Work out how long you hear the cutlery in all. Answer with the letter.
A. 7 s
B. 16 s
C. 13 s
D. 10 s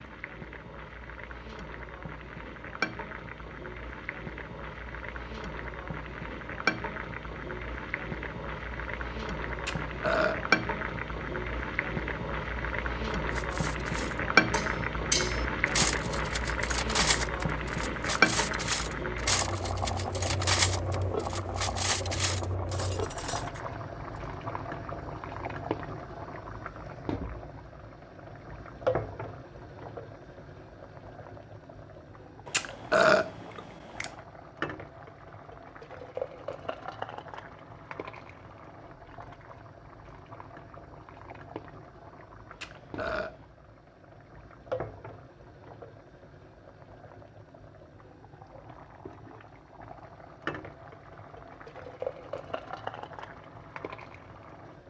D.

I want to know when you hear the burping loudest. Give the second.
33 s.